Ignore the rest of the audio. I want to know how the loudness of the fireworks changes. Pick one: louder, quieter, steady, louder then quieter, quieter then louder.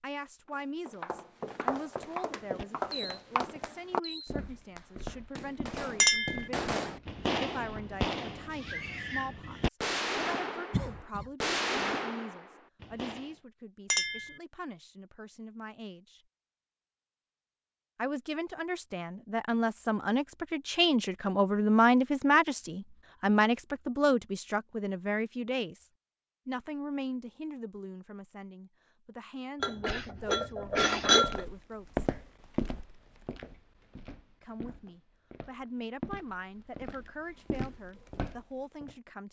louder.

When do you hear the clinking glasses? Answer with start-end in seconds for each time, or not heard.
6.0-6.5, 13.9-14.3, 29.6-31.4.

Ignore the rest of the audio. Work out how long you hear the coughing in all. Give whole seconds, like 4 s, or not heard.
2 s.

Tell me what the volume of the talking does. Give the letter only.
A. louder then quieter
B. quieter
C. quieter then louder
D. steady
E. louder
A.